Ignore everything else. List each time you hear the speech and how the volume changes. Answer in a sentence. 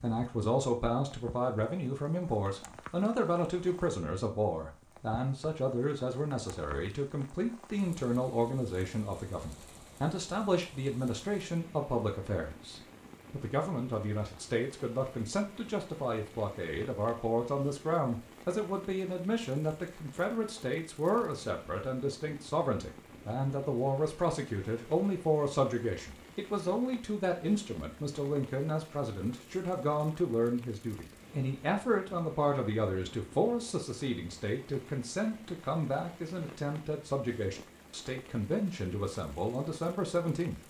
The speech can be heard from 0.0 to 40.6 s, at a steady volume.